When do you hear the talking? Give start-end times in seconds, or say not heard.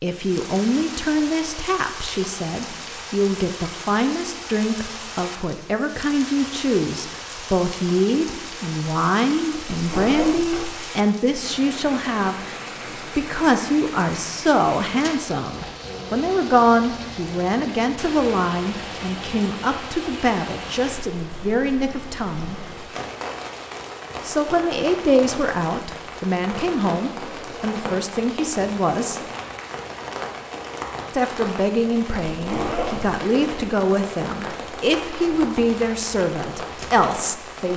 0.0-22.6, 24.2-29.2, 31.1-37.7.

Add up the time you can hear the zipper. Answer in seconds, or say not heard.
2 s.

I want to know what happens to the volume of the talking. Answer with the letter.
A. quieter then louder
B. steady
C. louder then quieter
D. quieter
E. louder
B.